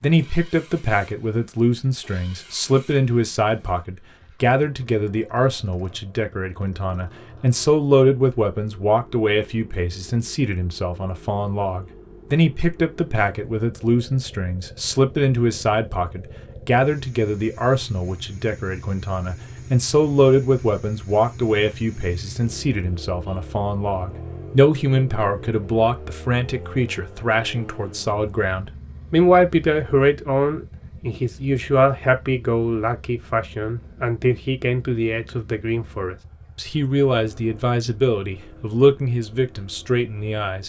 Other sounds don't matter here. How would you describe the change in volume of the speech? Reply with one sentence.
The volume of the speech stays about the same.